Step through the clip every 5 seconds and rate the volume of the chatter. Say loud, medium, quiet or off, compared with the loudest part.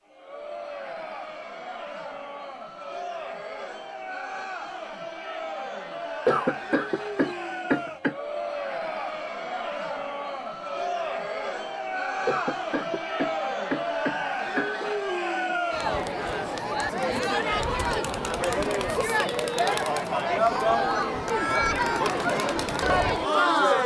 quiet, medium, medium, loud, loud.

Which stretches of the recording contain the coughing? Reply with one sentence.
The coughing can be heard from 6.2 to 8.2 s and from 12.2 to 14.9 s.